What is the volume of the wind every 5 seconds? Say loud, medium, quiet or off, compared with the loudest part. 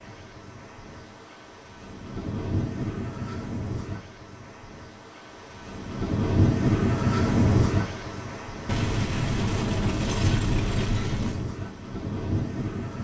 medium, loud, medium.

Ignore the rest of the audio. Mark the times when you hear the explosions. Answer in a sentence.
The explosions can be heard from 8.7 to 11.4 s.